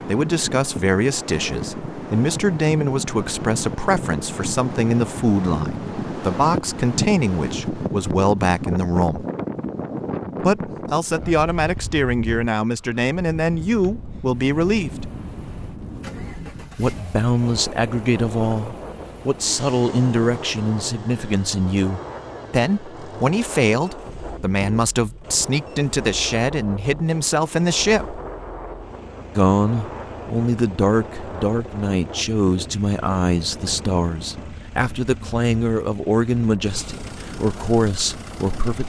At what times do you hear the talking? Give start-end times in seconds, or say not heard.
0.1-9.2, 10.4-15.1, 16.8-28.2, 29.4-38.8.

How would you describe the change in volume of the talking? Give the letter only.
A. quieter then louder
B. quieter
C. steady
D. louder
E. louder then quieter
C.